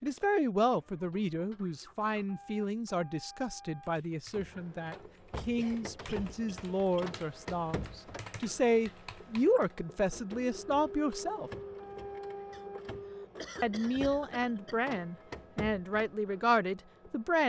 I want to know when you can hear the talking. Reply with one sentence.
You can hear the talking from 0.0 to 11.5 s and from 13.6 to 17.4 s.